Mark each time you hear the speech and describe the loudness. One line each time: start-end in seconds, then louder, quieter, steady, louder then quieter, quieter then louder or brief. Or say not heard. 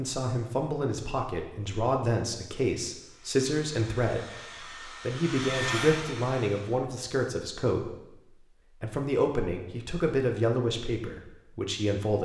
0.0-12.1 steady.